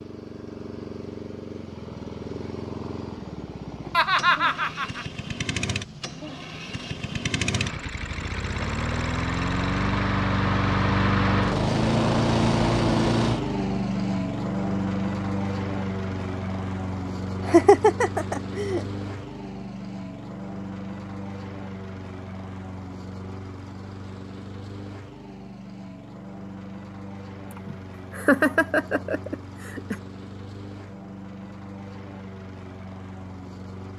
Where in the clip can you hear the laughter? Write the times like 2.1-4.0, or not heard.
3.9-5.0, 17.4-18.9, 27.5-29.9.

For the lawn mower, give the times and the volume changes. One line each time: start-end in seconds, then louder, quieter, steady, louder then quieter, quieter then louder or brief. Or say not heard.
0.0-33.9 louder then quieter.